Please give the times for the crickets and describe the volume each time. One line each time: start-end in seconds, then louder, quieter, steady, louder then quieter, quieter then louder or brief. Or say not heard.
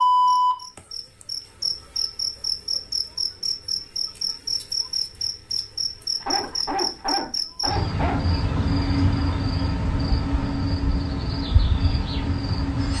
0.0-12.9 steady.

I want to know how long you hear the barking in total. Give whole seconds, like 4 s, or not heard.
2 s.